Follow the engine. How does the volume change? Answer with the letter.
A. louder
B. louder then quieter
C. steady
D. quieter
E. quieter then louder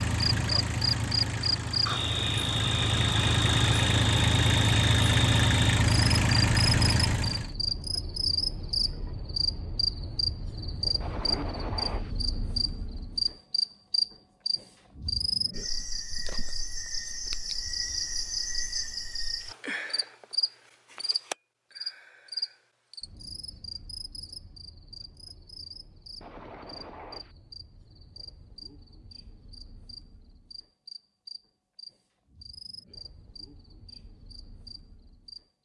A.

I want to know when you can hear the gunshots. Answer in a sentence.
You can hear the gunshots from 11.0 to 12.2 s and from 26.2 to 27.4 s.